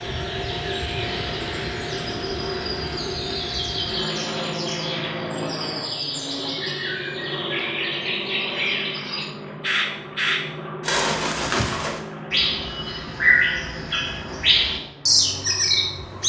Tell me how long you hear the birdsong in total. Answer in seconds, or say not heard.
16 s.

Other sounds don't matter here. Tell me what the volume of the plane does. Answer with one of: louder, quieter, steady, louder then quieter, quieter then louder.
quieter.